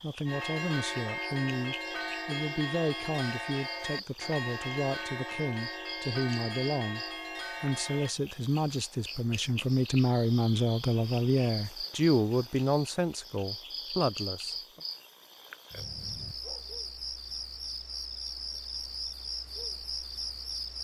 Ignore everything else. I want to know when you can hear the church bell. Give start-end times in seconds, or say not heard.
0.2-8.2.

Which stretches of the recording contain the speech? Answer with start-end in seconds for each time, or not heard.
0.0-14.8.